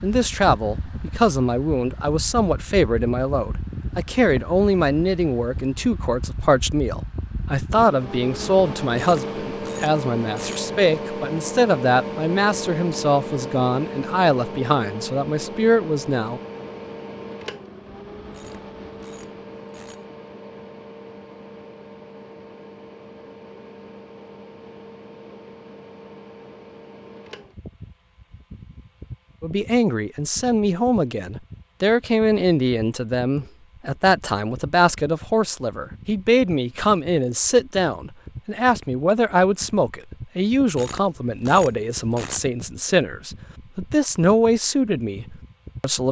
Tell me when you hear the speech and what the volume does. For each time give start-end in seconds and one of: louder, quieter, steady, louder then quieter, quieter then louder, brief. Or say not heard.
0.0-16.4 steady
29.4-46.0 steady.